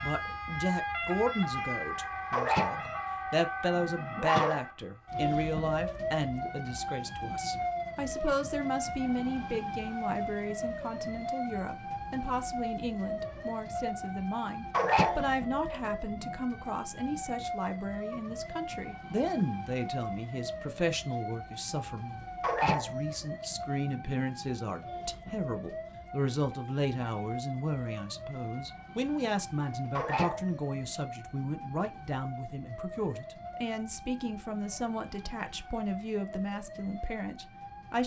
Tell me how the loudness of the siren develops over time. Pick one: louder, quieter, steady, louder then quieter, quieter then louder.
quieter.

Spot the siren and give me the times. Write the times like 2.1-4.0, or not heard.
0.0-38.0.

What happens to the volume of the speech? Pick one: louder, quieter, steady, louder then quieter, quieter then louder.
steady.